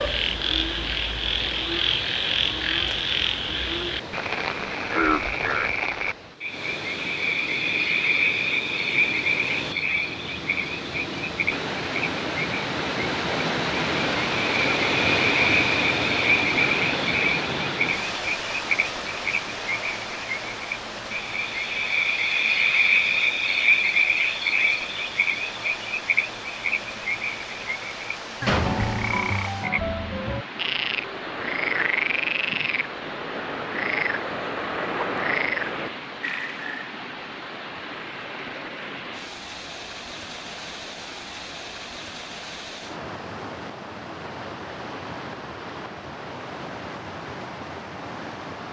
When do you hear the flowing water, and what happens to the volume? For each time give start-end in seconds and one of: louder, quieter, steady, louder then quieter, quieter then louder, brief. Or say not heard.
0.0-48.6 louder then quieter.